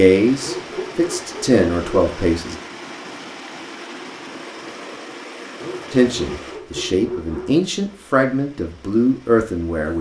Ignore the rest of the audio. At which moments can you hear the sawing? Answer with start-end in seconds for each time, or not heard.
0.4-2.1, 5.6-7.5.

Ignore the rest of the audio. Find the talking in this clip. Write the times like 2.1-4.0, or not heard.
0.0-2.5, 5.9-9.9.